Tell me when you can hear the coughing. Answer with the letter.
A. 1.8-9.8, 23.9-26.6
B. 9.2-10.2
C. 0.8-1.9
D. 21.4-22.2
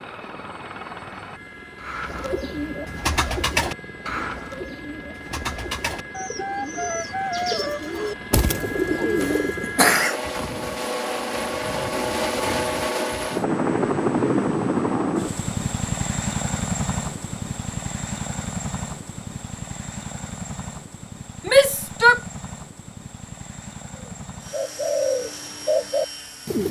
B.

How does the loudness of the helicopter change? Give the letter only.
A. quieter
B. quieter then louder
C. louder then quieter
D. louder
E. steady
C.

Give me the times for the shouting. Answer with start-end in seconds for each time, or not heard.
21.4-22.2.